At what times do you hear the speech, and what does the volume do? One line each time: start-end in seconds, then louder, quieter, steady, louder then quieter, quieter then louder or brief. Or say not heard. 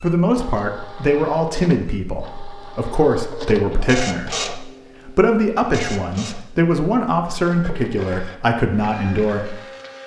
0.0-9.6 steady.